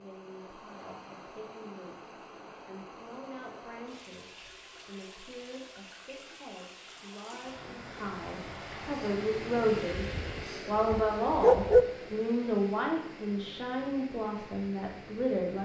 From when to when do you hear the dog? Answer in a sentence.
The dog can be heard from 9.9 to 11.8 s.